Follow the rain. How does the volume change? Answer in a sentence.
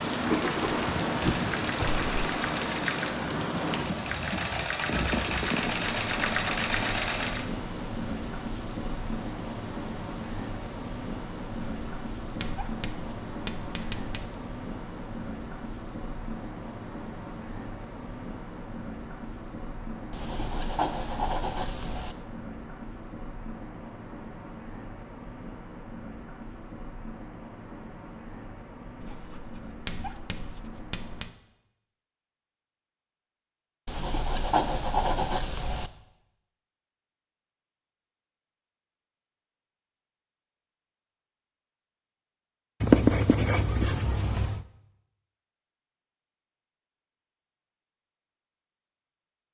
The loudness of the rain goes down.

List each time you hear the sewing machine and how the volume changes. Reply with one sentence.
You can hear the sewing machine from 0.2 to 7.5 s, getting louder.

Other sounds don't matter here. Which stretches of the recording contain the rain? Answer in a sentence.
The rain can be heard from 0.0 to 31.2 s.